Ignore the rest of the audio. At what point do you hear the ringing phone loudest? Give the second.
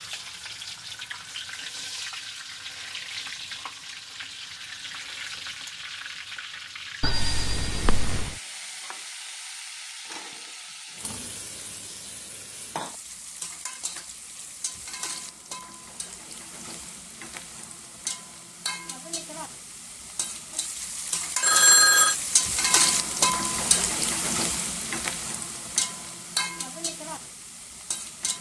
22 s.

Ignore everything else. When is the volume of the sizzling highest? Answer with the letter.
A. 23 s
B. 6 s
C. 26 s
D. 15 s
A.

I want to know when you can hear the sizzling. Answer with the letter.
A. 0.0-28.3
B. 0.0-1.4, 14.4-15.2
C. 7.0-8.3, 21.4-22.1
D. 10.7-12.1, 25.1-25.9
A.